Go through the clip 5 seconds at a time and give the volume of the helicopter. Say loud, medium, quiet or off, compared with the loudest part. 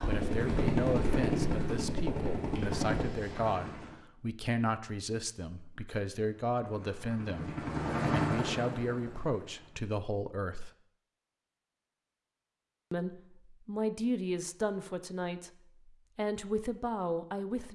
loud, loud, off, off.